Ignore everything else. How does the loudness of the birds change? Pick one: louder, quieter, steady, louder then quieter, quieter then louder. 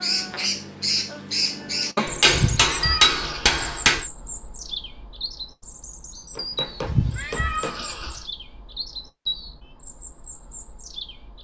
quieter.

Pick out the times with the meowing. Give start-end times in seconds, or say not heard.
2.3-4.0, 6.8-8.2.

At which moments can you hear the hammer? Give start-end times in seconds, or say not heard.
1.9-4.0, 6.3-7.8.